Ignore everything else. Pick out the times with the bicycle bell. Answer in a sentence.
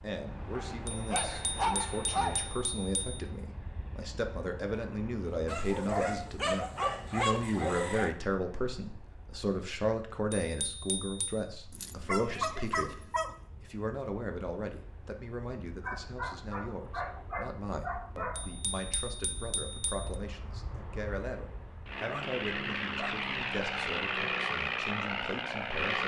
You can hear the bicycle bell from 0.8 to 3.2 s, from 10.3 to 11.4 s and from 18.4 to 20.1 s.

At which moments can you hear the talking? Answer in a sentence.
The talking can be heard from 0.0 to 26.0 s.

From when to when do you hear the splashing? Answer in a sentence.
The splashing can't be heard in this clip.